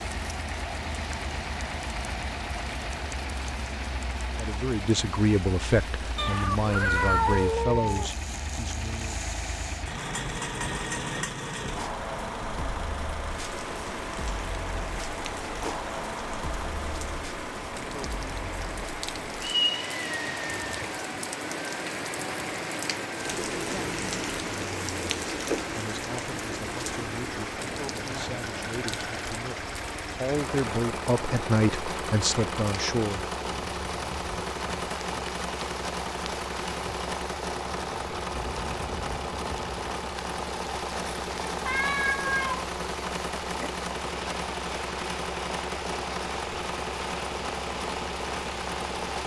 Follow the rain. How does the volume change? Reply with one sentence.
The loudness of the rain goes up, then down.